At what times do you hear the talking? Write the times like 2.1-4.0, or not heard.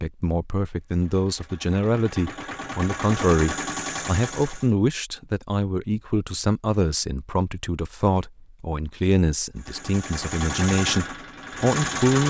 0.0-12.2.